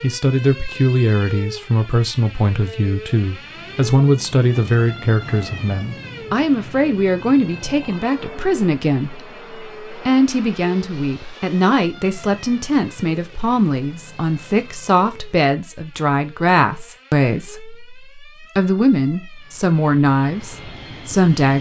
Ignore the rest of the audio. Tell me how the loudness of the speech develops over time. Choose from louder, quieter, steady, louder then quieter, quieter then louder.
steady.